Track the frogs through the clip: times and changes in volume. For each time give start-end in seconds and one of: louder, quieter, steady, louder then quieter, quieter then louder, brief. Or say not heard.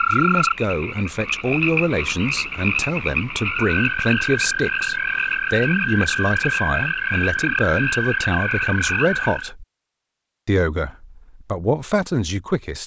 0.0-9.5 steady.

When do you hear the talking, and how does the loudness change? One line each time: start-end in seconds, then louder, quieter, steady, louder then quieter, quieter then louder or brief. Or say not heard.
0.1-9.7 steady
10.4-12.8 brief.